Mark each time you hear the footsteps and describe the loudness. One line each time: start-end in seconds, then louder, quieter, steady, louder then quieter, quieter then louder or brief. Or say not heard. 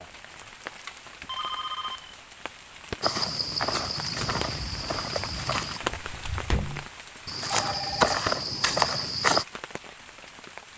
3.0-9.4 quieter then louder.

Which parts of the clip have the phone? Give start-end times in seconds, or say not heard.
1.2-2.1, 7.5-8.2.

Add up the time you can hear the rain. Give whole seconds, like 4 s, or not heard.
11 s.